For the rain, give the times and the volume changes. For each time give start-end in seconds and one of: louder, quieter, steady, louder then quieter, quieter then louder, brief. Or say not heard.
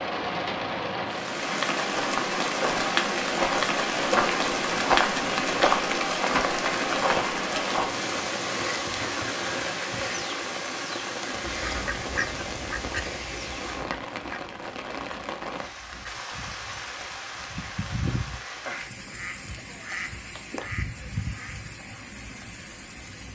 0.0-23.2 quieter.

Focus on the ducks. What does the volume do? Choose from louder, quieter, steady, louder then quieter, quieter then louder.
quieter then louder.